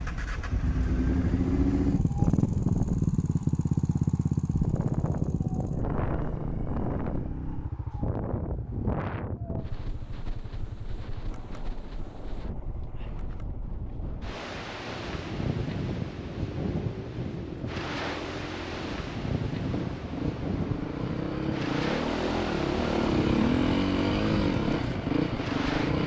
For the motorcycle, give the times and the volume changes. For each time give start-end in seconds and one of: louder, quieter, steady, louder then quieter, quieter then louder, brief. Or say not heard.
0.0-26.0 quieter then louder.